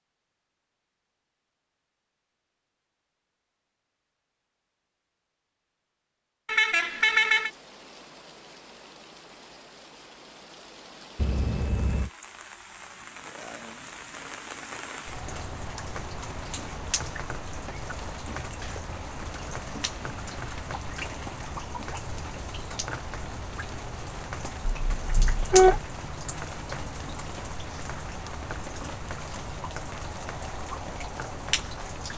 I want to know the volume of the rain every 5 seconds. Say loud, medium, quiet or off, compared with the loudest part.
off, quiet, medium, loud, loud, loud, loud.